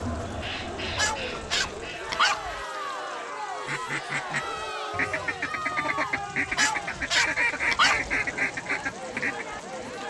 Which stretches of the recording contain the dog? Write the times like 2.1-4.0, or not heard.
0.8-2.6, 6.5-8.2.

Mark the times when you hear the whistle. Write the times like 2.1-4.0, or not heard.
not heard.